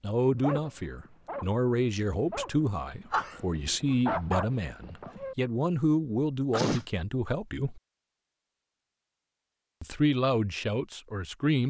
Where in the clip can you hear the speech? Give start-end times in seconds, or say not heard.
0.0-7.8, 9.8-11.6.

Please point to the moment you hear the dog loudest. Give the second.
4 s.